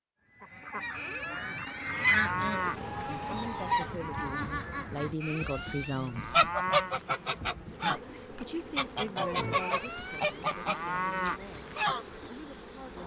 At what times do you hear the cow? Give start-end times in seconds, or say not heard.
0.9-2.8, 5.2-7.0, 9.6-11.4.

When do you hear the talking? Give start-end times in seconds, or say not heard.
1.8-6.5, 7.8-13.0.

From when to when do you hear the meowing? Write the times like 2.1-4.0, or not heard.
9.2-9.8.